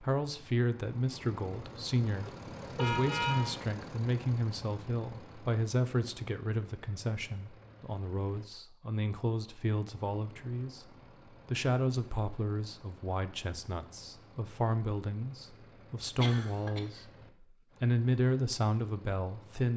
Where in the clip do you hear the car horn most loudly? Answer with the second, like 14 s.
3 s.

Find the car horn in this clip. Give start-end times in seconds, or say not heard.
2.0-3.6.